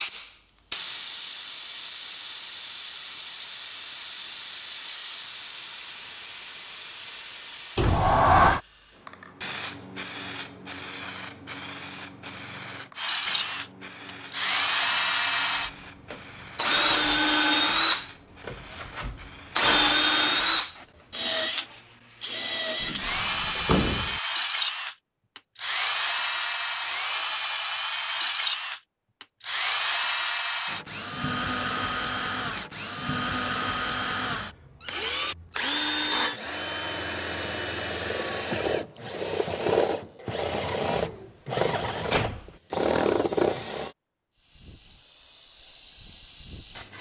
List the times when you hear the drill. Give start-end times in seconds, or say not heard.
12.9-44.0.